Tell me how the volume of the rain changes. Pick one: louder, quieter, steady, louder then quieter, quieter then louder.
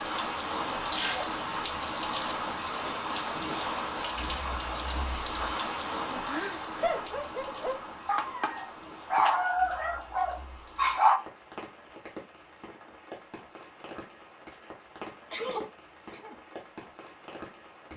quieter.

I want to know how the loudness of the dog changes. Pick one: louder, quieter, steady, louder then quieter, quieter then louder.
louder then quieter.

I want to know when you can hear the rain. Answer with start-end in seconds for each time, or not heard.
0.0-17.9.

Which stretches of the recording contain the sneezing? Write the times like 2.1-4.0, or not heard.
0.9-1.4, 6.2-7.0, 15.3-16.4.